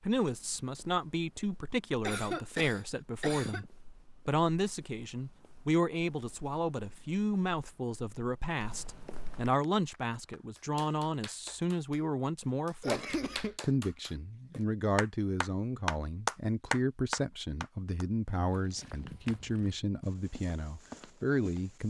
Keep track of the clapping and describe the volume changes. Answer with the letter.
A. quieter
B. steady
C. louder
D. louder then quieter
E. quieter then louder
C.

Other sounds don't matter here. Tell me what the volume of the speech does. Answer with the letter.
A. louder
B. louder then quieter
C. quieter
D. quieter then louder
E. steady
E.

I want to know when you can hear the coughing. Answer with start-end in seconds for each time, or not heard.
2.0-3.7, 12.8-13.6.